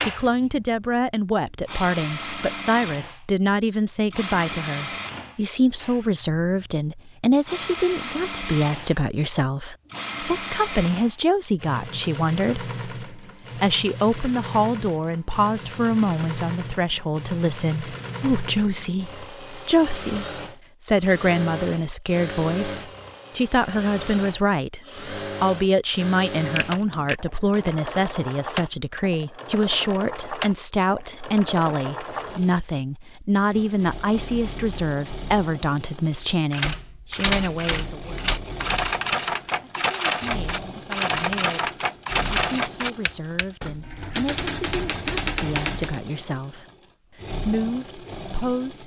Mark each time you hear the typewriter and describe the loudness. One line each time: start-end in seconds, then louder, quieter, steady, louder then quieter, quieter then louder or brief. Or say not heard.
36.5-46.0 steady.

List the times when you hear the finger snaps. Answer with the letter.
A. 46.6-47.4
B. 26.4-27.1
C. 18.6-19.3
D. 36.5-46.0
B.